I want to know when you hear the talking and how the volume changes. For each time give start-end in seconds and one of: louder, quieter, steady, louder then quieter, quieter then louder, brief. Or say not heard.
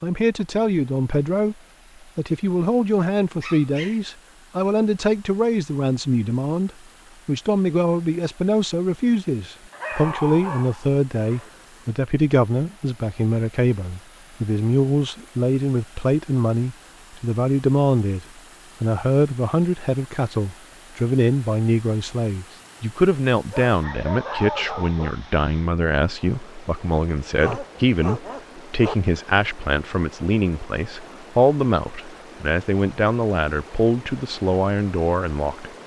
0.0-1.6 brief
2.1-35.7 steady.